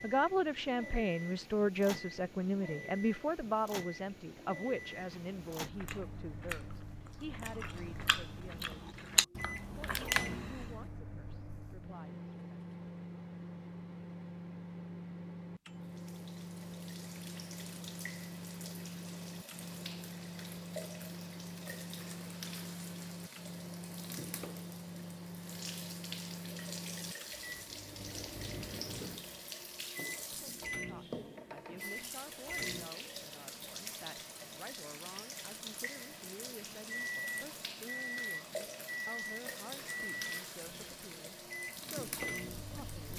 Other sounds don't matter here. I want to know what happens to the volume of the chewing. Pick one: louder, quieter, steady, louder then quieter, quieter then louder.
louder.